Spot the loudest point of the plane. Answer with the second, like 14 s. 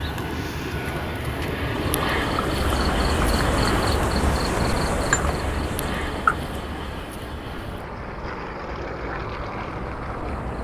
2 s.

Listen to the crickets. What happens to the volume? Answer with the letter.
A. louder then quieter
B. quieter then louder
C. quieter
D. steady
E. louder
C.